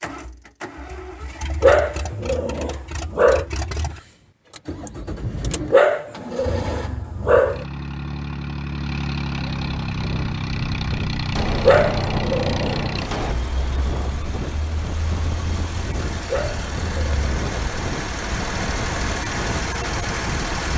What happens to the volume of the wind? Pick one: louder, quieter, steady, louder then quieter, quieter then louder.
steady.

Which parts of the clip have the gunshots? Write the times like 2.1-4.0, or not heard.
11.3-13.3.